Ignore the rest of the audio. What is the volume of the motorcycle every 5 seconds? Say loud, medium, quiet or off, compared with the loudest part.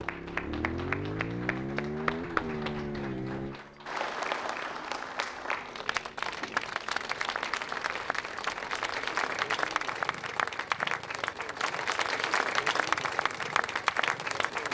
loud, quiet, quiet.